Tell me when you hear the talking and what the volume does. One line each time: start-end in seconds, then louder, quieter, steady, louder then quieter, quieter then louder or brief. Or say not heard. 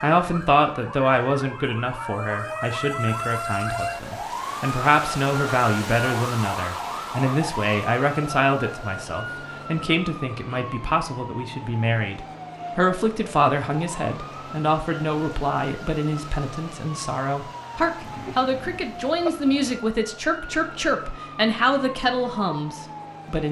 0.0-23.4 steady.